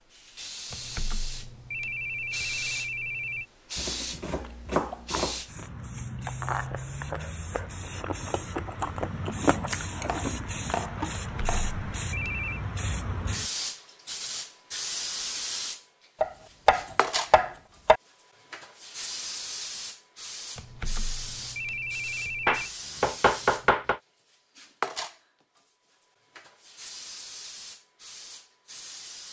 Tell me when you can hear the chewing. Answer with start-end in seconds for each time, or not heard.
3.7-11.2.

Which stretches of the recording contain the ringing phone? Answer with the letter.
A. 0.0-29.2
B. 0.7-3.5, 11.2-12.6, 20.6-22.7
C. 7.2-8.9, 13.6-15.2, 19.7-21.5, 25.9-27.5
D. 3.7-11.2
B.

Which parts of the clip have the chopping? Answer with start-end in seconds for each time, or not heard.
3.8-5.4, 10.1-11.7, 16.2-18.0, 22.4-24.0.